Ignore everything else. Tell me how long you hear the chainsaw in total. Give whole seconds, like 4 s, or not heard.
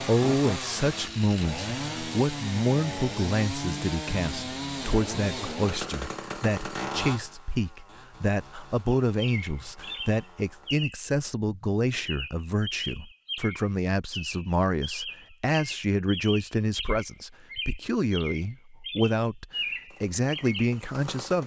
12 s.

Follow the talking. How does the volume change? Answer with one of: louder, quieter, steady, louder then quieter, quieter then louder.
steady.